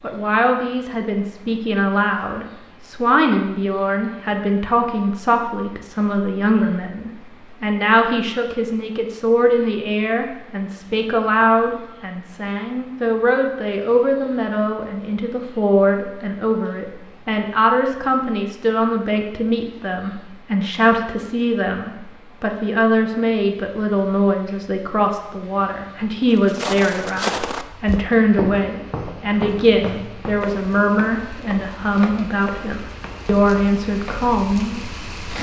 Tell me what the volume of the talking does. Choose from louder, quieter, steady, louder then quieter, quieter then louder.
steady.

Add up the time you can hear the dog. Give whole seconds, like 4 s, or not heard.
not heard.